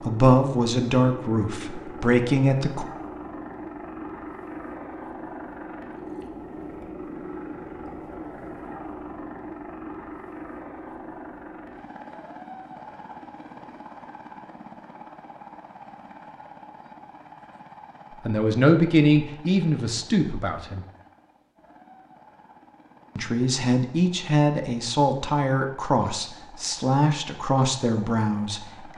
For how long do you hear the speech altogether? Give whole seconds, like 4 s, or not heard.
11 s.